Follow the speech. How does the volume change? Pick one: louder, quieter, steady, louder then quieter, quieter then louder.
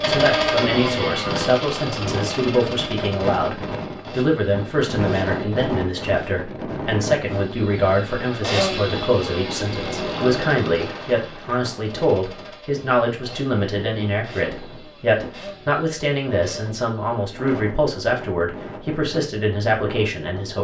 steady.